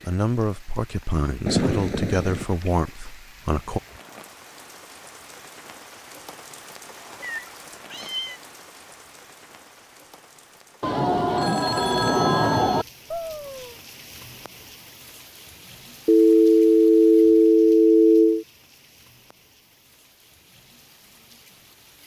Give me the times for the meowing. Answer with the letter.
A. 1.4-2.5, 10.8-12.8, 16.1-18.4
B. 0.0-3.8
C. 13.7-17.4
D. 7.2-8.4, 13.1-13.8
D.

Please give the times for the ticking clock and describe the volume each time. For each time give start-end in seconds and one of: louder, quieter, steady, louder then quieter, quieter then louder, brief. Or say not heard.
not heard.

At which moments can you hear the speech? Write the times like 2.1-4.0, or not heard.
0.0-3.8.